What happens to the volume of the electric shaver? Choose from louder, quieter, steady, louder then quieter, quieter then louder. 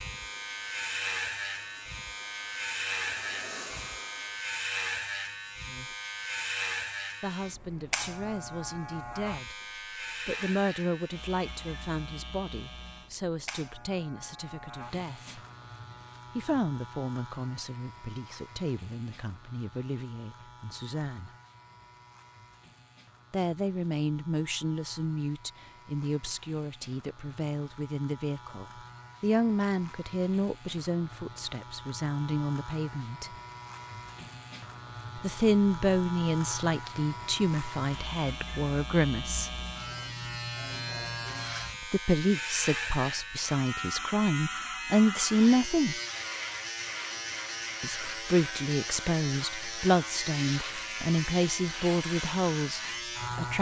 quieter then louder.